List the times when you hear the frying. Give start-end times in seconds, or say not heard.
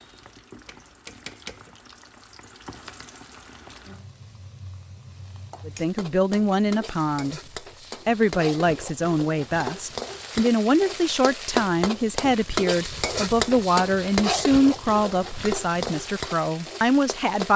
0.0-17.5.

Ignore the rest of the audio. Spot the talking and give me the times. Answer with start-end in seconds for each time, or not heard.
5.7-7.4, 8.1-17.5.